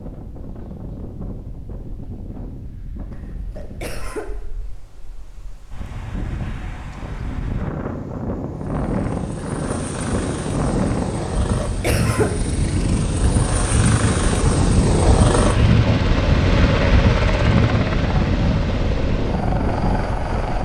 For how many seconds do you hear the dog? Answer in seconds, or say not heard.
not heard.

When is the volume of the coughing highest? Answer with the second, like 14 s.
12 s.